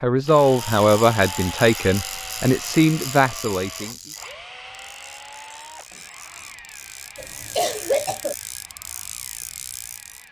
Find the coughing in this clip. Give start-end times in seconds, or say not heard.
7.2-8.3.